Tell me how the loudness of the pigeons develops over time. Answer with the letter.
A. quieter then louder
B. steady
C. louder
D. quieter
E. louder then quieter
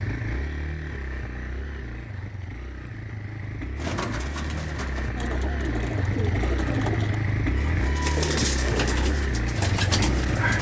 C.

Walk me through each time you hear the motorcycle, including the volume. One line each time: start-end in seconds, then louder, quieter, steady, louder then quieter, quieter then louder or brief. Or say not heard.
0.0-10.5 louder.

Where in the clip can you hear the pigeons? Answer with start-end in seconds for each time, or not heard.
3.8-10.5.